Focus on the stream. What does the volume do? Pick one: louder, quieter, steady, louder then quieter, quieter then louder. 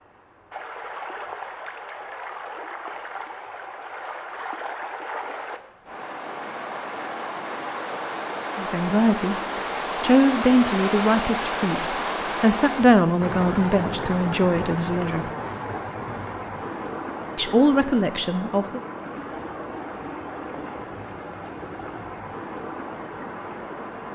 louder then quieter.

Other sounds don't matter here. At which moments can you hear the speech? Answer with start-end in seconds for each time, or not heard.
8.6-9.3, 10.0-15.2, 17.4-18.8.